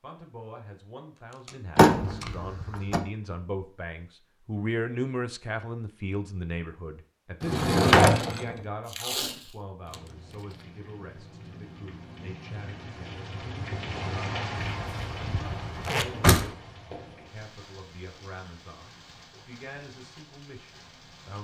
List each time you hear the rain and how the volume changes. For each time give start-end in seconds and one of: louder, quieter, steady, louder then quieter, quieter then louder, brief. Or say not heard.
9.8-21.3 louder then quieter.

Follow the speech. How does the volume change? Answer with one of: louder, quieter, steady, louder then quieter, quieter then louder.
louder then quieter.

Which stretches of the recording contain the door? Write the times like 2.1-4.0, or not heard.
1.8-3.0, 7.4-8.6, 14.7-16.4.